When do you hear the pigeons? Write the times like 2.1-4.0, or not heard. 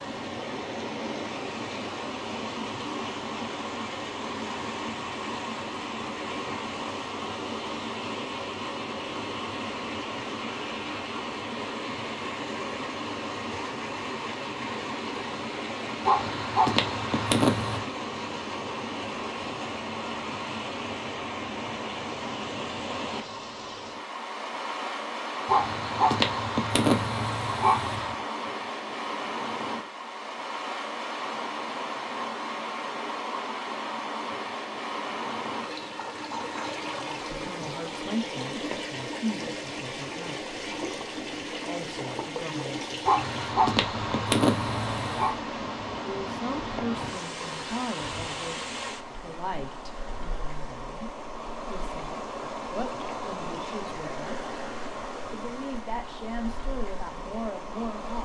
not heard.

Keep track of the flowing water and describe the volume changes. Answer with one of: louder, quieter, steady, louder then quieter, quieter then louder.
steady.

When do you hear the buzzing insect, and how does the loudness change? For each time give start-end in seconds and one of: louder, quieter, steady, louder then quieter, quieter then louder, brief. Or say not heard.
not heard.